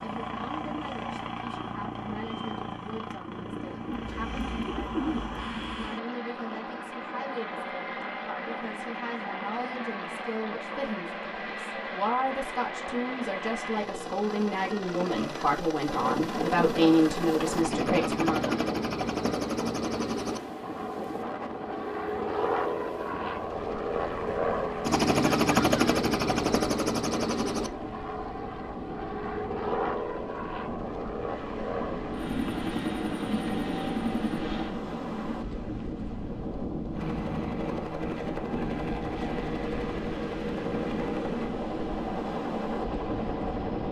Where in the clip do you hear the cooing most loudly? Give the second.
5 s.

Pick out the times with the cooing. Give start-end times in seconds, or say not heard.
3.9-5.9.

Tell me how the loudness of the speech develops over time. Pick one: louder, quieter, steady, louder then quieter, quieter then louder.
louder.